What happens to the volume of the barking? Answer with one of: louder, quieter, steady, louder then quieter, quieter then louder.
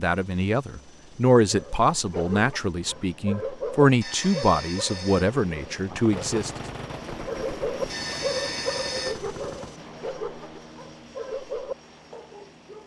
louder then quieter.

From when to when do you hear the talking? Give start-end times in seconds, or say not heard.
0.0-6.5.